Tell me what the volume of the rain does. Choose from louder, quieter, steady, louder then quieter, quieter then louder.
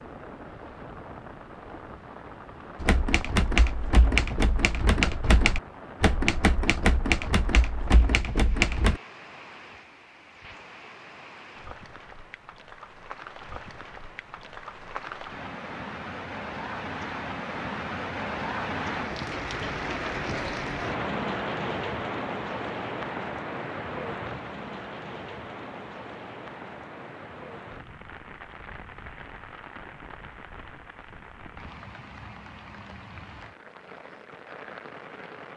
louder then quieter.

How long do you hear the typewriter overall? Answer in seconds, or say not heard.
6 s.